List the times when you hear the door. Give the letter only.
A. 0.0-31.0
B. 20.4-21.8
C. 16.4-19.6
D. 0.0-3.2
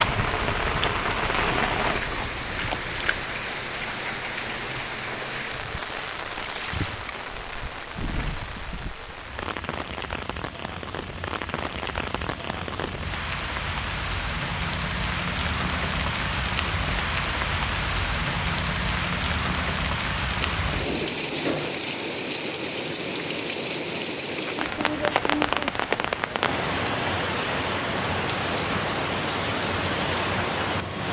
B.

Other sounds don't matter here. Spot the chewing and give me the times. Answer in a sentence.
You can hear the chewing from 0.0 to 3.2 s.